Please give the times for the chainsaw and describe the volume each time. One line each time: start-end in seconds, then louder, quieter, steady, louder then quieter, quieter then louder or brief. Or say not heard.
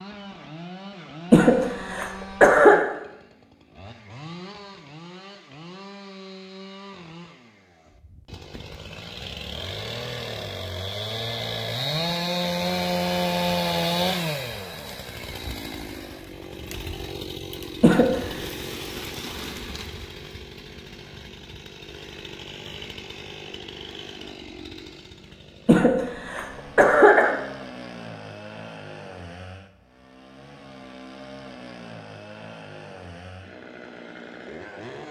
0.0-35.0 louder then quieter.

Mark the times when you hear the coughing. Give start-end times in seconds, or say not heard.
1.3-2.9, 17.8-18.4, 25.6-27.4.